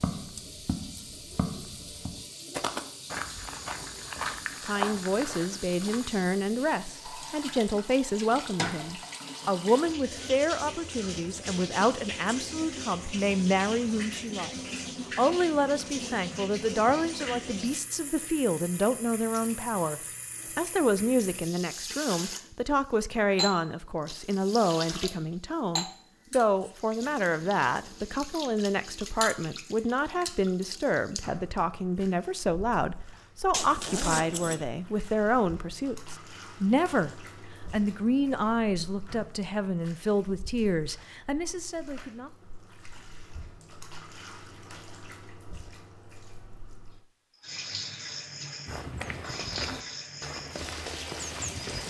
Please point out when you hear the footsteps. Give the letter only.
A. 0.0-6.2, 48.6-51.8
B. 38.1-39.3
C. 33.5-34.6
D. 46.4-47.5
A.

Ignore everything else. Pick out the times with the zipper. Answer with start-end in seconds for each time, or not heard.
33.5-34.6.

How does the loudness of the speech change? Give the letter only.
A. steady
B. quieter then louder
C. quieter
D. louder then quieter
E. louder
A.